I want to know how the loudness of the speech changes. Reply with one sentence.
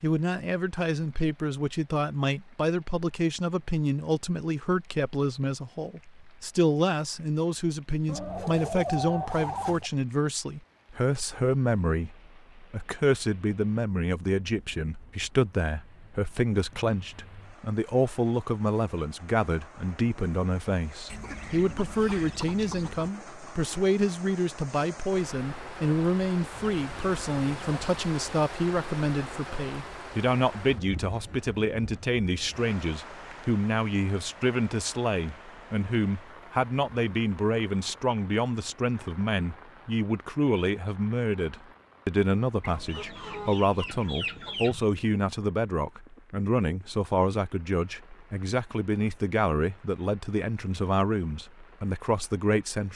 The loudness of the speech stays about the same.